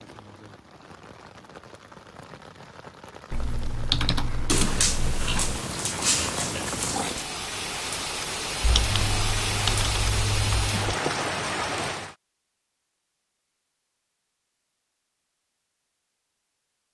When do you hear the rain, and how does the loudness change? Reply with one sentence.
You can hear the rain from 0.0 to 12.2 s, getting louder.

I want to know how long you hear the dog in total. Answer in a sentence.
The dog can be heard for 3 seconds in total.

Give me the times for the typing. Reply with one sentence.
You can hear the typing from 3.3 to 5.6 s and from 8.6 to 10.8 s.